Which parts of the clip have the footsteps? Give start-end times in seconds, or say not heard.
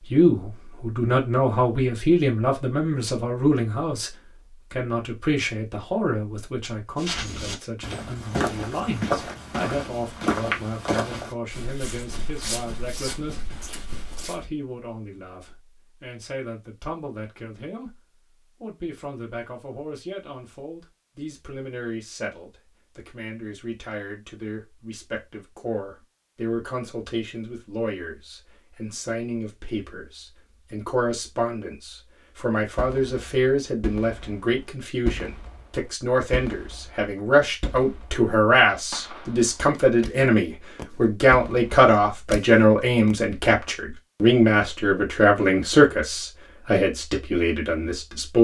7.0-14.4.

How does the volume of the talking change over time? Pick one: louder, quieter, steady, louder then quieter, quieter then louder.
quieter then louder.